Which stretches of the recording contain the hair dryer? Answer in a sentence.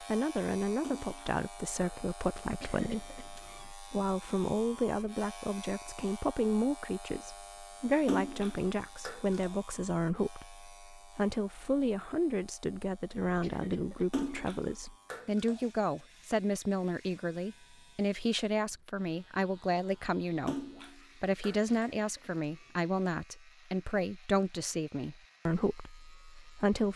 You can't hear the hair dryer here.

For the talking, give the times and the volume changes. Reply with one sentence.
The talking can be heard from 0.0 to 26.9 s, at a steady volume.